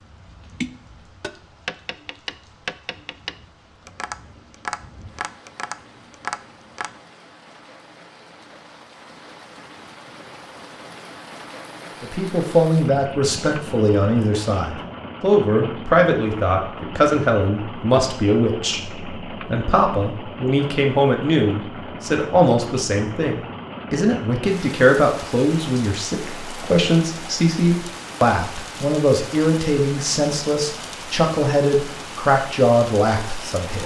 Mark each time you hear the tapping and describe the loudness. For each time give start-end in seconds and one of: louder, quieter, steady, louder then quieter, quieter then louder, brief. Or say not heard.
0.4-7.0 steady.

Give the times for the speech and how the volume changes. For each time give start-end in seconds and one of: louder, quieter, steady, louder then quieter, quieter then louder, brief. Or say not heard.
12.0-33.8 steady.